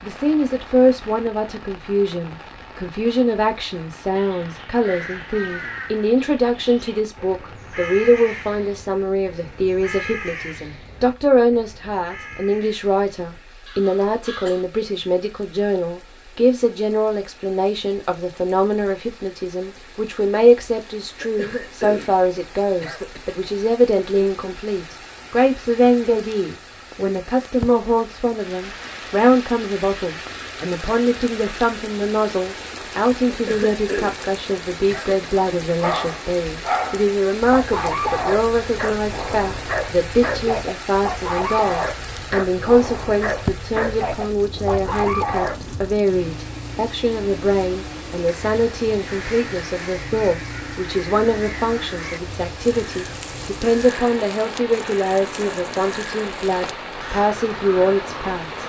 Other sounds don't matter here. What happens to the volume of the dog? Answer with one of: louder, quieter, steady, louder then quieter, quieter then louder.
steady.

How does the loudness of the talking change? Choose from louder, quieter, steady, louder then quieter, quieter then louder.
steady.